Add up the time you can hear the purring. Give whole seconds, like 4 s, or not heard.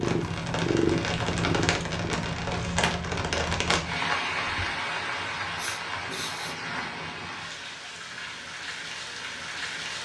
2 s.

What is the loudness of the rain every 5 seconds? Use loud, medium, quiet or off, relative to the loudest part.
loud, medium.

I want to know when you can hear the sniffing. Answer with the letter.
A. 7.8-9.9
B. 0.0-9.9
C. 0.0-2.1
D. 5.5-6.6
D.